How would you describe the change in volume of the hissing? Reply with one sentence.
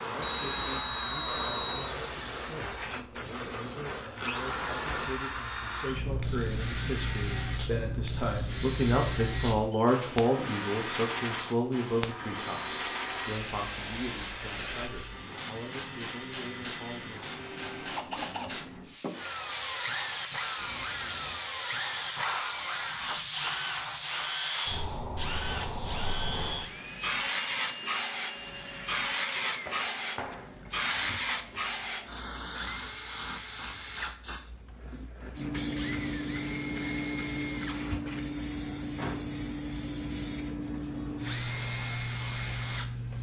The loudness of the hissing stays about the same.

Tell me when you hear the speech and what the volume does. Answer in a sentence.
You can hear the speech from 0.0 to 17.3 s, getting louder then quieter.